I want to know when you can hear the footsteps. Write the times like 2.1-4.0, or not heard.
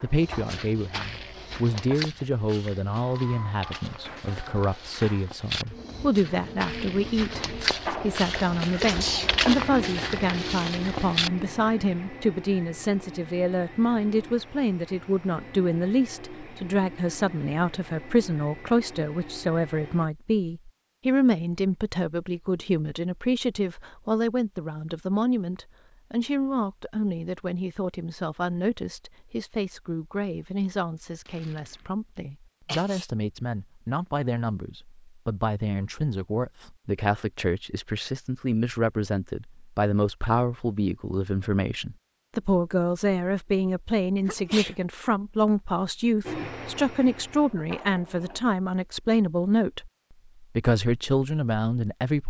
0.1-11.4.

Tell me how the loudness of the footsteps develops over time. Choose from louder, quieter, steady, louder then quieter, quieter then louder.
quieter then louder.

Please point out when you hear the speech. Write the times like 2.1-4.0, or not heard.
0.0-52.2.